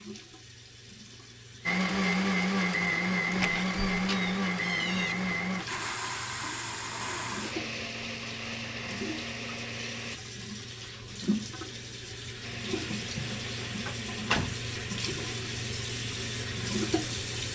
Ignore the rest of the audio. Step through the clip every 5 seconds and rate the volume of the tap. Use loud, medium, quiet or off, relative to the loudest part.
quiet, medium, loud, loud.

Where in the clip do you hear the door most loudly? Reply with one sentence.
The volume of the door peaks at 14 seconds.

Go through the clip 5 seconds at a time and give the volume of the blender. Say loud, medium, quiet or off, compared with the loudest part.
loud, medium, quiet, quiet.